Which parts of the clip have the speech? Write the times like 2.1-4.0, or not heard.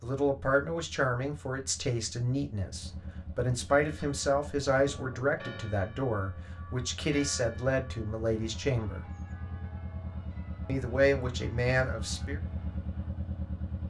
0.0-9.1, 10.7-12.4.